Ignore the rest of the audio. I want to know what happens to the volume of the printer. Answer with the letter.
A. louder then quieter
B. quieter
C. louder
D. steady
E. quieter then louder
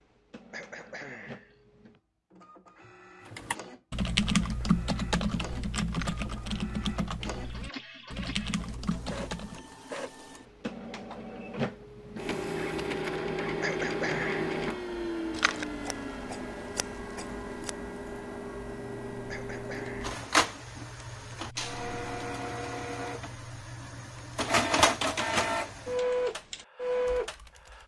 C.